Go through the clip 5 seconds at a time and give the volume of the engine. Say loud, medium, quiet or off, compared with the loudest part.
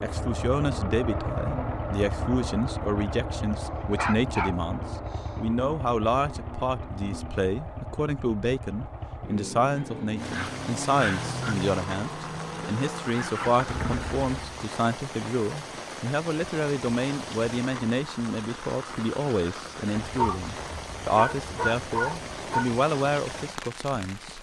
loud, medium, loud, off, off.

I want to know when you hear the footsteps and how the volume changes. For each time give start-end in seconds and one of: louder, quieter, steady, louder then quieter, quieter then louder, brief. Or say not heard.
not heard.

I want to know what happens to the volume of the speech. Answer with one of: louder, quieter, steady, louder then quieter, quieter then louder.
steady.